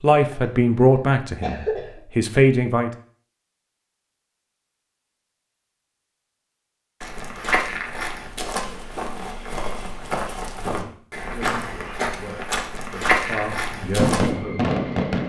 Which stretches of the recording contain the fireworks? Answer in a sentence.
You can hear the fireworks from 13.6 to 15.2 s.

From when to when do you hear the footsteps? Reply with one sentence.
You can hear the footsteps from 7.0 to 14.3 s.